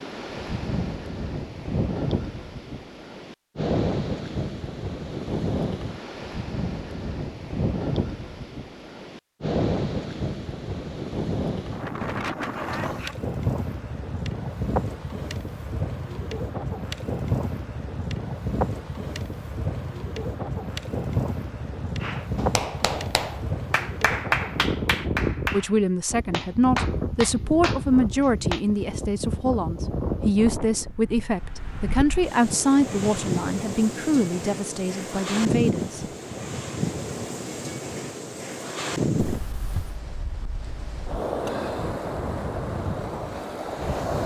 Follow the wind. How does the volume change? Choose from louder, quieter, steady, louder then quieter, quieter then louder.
steady.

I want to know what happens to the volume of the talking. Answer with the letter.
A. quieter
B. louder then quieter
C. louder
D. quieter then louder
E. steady
E.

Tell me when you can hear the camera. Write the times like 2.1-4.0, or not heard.
39.2-40.0.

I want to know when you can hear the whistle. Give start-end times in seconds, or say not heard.
not heard.